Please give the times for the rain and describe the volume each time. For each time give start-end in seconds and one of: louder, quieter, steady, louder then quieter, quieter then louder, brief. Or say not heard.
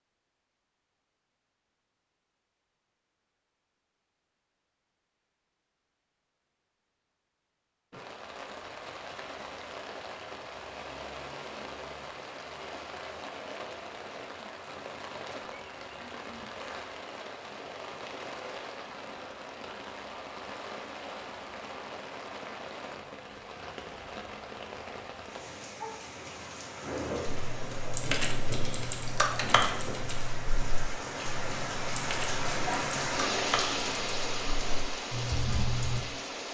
7.9-36.4 louder.